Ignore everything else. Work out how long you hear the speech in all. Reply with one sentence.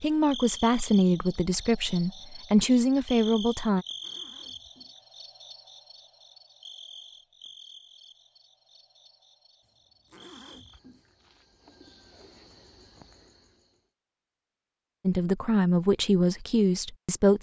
The speech can be heard for 6 seconds in total.